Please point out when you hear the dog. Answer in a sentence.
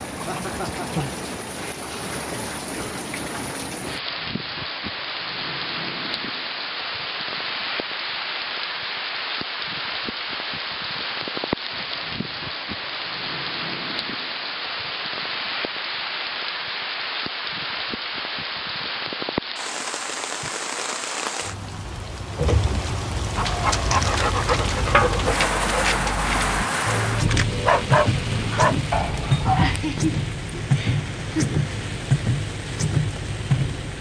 You can hear the dog from 23.4 to 29.8 s.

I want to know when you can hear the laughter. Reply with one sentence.
The laughter can be heard from 0.2 to 1.1 s and from 29.6 to 31.5 s.